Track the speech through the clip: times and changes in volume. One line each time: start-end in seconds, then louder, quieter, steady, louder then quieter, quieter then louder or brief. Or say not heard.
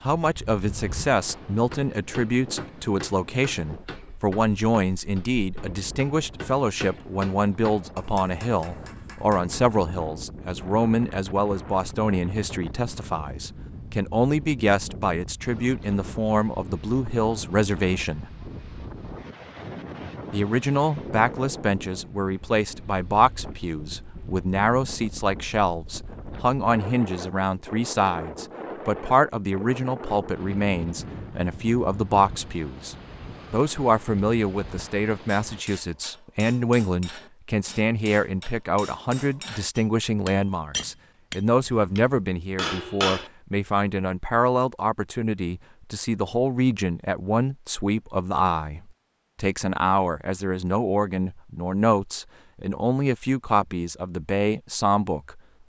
0.0-18.3 steady
20.3-55.4 steady.